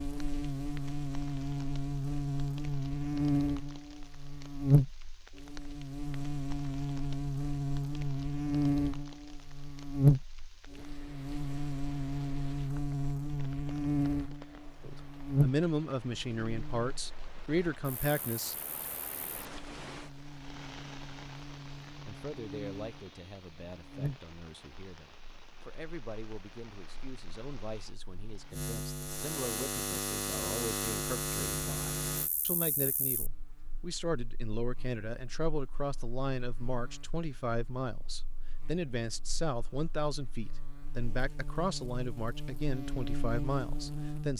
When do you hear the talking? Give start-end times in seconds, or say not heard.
14.8-18.6, 22.1-44.3.